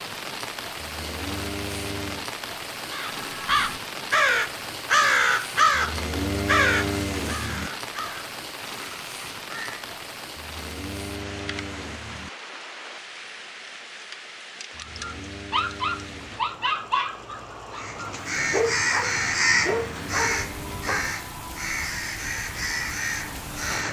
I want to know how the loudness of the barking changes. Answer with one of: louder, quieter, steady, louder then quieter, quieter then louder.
quieter then louder.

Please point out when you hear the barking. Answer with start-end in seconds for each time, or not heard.
14.8-21.1.